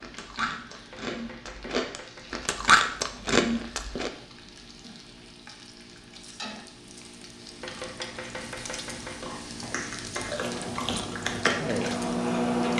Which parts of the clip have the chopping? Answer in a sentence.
The chopping can be heard from 0.9 to 2.5 s and from 7.6 to 9.3 s.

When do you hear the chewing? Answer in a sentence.
You can hear the chewing from 0.0 to 4.1 s and from 9.0 to 12.7 s.